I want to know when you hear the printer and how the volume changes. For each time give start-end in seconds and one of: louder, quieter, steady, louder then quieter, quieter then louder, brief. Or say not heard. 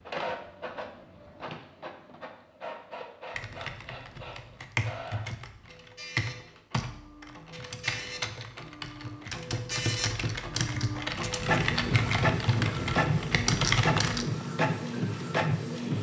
0.0-15.9 louder.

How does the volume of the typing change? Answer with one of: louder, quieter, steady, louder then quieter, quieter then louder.
louder.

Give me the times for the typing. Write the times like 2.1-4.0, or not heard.
3.4-14.2.